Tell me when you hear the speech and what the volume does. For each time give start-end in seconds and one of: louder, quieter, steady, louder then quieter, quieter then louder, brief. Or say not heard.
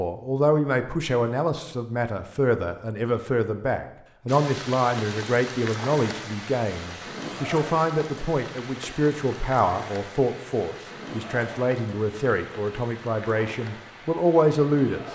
0.0-15.0 steady.